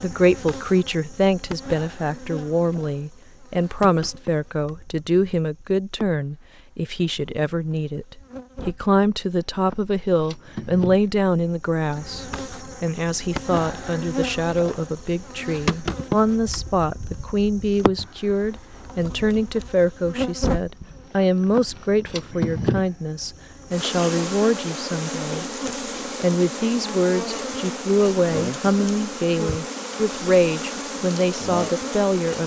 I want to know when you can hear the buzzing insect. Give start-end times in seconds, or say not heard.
0.0-32.4.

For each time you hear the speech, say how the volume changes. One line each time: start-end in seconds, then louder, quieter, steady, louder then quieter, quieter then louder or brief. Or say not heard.
0.0-25.4 steady
26.2-32.4 steady.